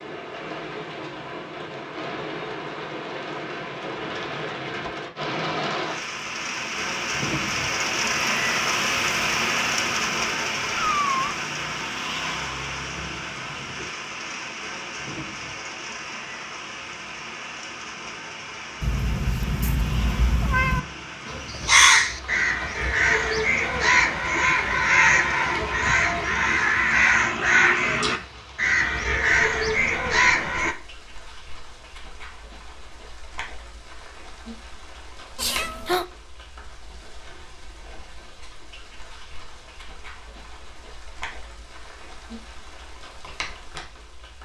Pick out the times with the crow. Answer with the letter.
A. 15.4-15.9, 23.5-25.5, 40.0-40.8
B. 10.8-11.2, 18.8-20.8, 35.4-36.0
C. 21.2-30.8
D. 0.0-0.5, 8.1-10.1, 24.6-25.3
C.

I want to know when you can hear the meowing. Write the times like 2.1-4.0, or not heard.
10.8-11.2, 18.8-20.8, 35.4-36.0.